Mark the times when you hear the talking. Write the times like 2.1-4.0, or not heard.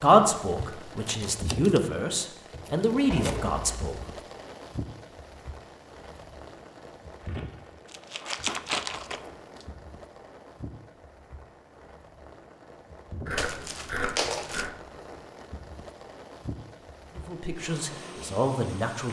0.0-4.0, 17.1-19.0.